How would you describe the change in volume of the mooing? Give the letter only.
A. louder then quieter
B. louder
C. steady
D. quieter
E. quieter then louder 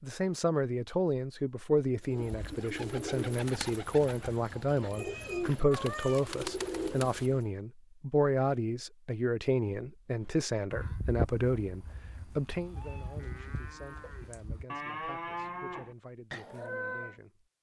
E.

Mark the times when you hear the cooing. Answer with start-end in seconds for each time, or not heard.
2.0-7.5.